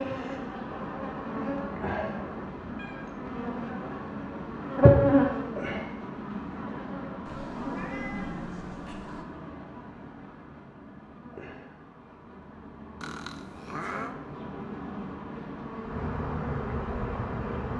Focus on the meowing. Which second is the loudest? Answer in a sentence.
The volume of the meowing peaks at 14 seconds.